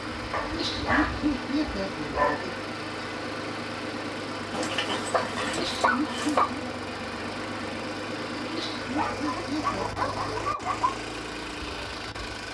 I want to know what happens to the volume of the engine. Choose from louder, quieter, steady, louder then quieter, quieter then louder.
steady.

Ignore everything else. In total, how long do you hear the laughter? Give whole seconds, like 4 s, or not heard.
5 s.